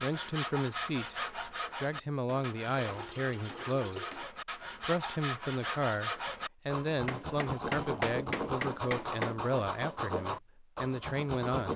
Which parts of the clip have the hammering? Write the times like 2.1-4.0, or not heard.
2.2-4.3, 7.0-9.3.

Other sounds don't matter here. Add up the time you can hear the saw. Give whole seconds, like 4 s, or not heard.
12 s.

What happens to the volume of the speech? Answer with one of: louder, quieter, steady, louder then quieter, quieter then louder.
steady.